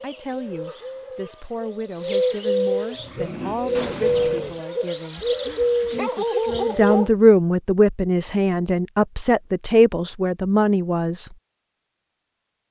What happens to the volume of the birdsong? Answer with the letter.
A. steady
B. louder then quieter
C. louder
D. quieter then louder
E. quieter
C.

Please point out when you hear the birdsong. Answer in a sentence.
You can hear the birdsong from 0.0 to 7.1 s.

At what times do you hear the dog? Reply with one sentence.
The dog can be heard from 5.2 to 7.1 s.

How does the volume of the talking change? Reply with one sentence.
The volume of the talking goes up.